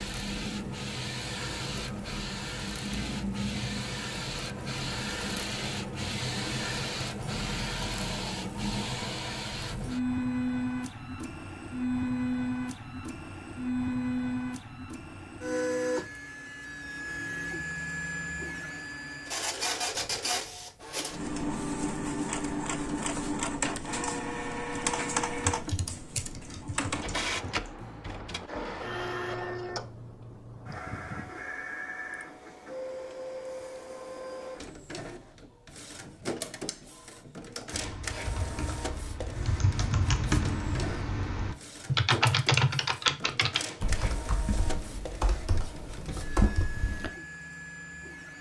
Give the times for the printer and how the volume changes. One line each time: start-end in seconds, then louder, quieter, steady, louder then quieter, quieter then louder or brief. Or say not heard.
0.0-48.3 quieter.